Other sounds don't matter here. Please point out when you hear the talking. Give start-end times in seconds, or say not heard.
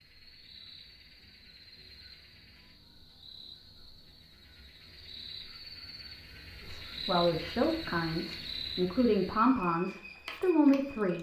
6.7-11.1.